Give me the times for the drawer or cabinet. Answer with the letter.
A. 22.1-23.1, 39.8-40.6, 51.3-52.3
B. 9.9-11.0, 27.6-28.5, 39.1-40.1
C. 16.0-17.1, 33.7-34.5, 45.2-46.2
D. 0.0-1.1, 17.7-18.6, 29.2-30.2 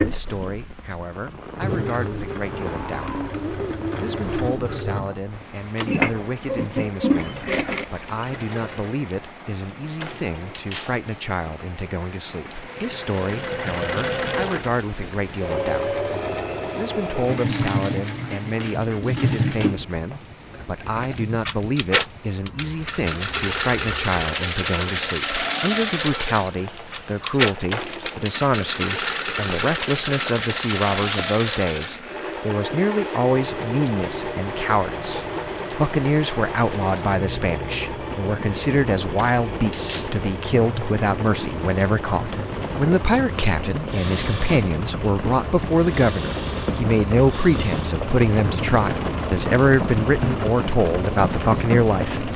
B.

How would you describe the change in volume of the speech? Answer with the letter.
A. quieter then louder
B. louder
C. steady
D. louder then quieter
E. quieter
B.